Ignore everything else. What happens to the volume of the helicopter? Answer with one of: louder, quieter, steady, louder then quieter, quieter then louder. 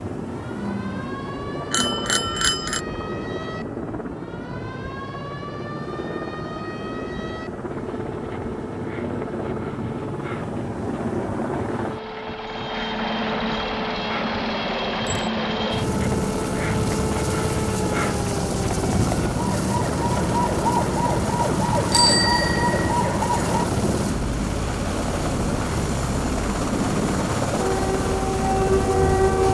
louder.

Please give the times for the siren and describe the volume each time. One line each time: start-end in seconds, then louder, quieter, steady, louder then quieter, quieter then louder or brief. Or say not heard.
0.2-23.6 louder
27.6-29.4 brief.